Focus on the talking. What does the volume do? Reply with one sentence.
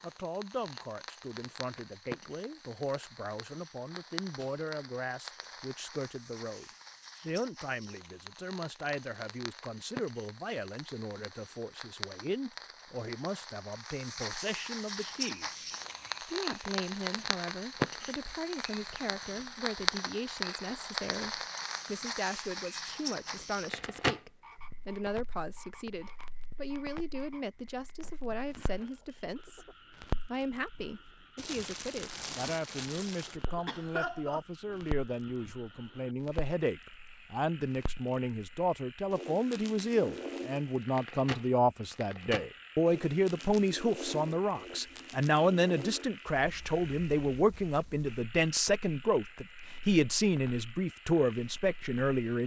The volume of the talking goes up.